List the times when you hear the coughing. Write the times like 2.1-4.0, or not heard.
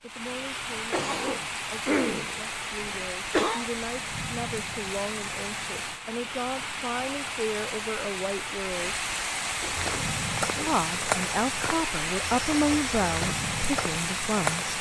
0.9-3.6, 9.6-10.8.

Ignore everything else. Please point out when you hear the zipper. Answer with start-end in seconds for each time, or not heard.
not heard.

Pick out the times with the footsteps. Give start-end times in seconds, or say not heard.
9.8-14.7.